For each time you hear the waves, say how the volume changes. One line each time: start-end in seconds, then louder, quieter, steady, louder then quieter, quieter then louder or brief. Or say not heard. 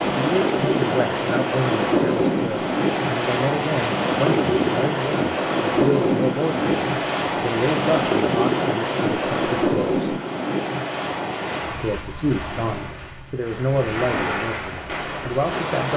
0.0-15.9 quieter.